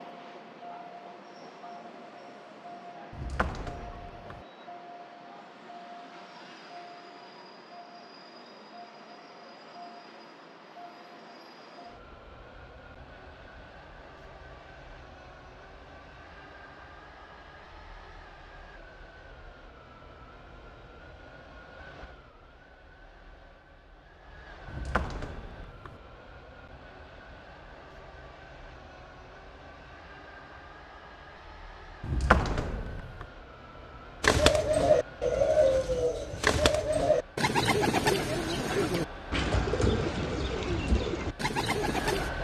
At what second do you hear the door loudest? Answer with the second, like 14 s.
32 s.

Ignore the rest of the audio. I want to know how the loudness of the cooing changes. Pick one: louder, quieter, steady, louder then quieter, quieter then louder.
quieter.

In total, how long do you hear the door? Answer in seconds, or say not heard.
4 s.